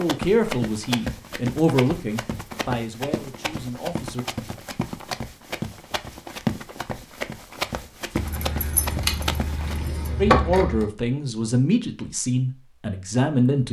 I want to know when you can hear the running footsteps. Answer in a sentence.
You can hear the running footsteps from 0.0 to 9.9 s.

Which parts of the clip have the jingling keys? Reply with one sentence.
The jingling keys can be heard from 8.2 to 10.8 s.